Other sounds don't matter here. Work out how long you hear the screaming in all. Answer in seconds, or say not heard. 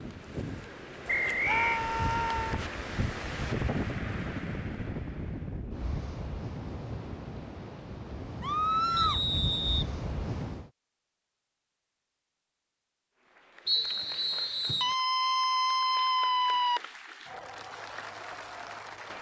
4 s.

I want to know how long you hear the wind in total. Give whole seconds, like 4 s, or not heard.
11 s.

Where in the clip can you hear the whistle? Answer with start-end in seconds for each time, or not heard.
1.1-1.8, 8.9-9.9, 13.7-14.9.